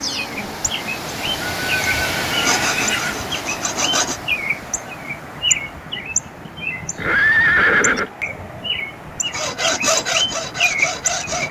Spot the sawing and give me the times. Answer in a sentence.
You can hear the sawing from 2.4 to 4.2 s and from 9.2 to 11.4 s.